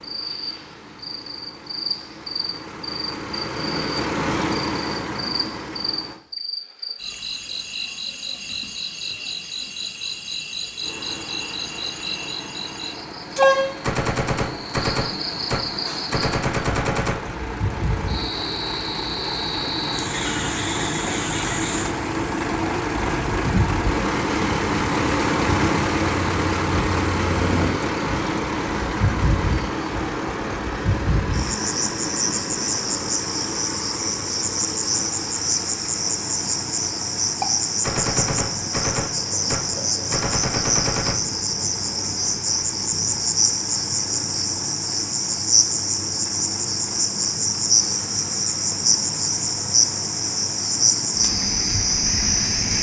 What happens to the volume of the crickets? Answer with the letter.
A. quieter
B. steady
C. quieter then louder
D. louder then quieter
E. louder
E.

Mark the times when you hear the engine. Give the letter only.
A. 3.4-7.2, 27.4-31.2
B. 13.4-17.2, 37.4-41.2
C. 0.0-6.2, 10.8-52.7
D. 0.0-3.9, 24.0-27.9
C.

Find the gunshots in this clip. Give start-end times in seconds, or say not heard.
13.4-17.2, 37.4-41.2.